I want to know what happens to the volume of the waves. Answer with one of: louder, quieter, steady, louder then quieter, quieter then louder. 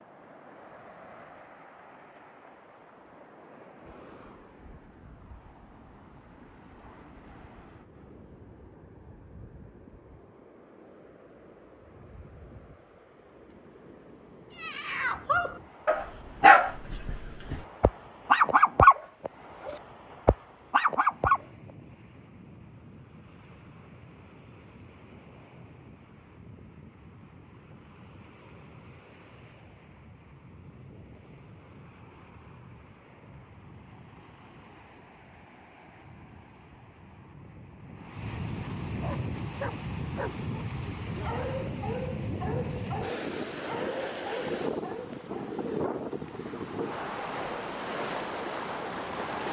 louder.